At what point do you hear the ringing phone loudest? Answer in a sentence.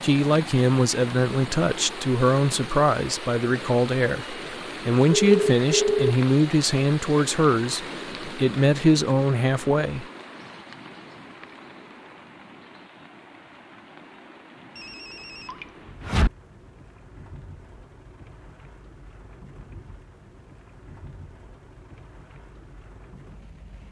The volume of the ringing phone peaks at 6 seconds.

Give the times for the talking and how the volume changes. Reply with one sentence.
The talking can be heard from 0.0 to 10.1 s, at a steady volume.